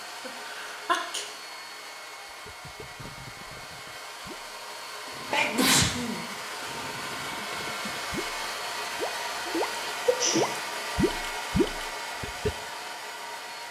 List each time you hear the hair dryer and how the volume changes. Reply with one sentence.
The hair dryer can be heard from 0.0 to 13.6 s, getting louder.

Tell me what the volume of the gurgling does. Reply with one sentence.
The volume of the gurgling goes up.